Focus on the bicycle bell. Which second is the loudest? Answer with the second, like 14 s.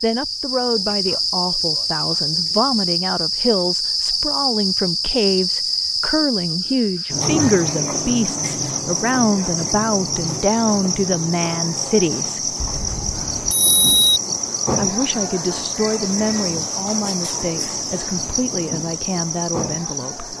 14 s.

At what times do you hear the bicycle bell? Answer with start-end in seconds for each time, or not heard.
12.6-14.2.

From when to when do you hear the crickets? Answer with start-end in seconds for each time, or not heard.
0.0-20.3.